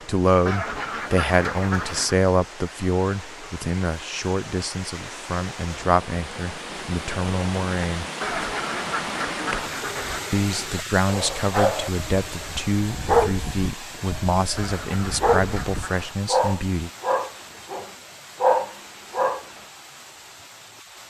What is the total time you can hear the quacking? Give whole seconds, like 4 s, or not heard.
5 s.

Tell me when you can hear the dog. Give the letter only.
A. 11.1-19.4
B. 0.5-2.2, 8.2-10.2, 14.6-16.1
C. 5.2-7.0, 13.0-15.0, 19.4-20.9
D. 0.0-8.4
A.